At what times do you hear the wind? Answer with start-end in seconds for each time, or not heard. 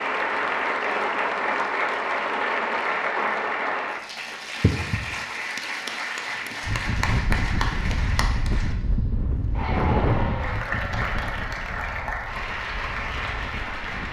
6.6-14.0.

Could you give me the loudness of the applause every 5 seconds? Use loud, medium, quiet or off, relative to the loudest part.
loud, medium, medium.